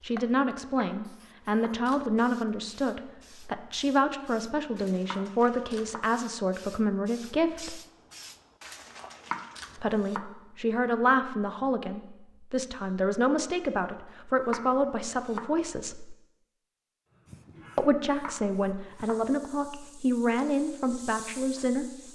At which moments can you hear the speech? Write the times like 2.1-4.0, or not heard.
0.0-7.8, 9.8-16.1, 17.8-22.0.